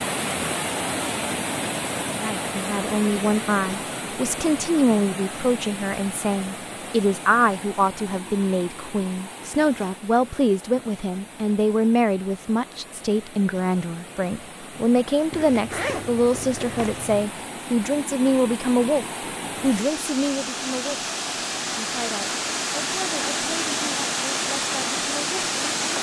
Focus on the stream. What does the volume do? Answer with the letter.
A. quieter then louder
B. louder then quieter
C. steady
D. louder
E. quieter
A.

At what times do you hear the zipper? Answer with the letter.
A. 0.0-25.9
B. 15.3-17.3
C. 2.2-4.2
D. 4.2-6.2
B.